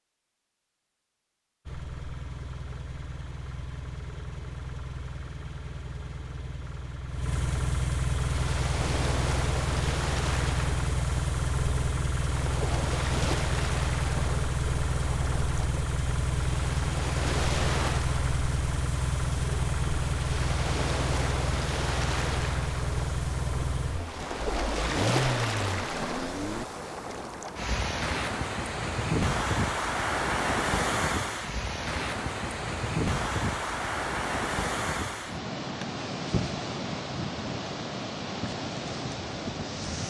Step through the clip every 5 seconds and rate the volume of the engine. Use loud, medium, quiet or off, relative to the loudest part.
medium, loud, loud, loud, loud, loud, off, off.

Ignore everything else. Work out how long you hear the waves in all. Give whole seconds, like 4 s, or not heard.
32 s.